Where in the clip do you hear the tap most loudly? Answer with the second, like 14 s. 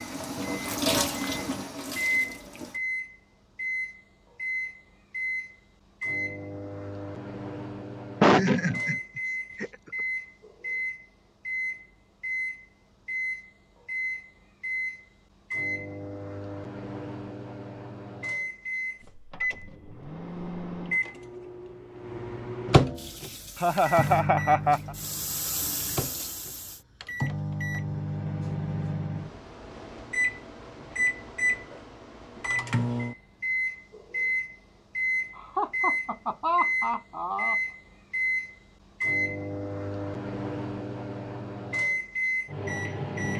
1 s.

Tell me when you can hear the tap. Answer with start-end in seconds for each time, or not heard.
0.0-2.8, 22.9-26.9.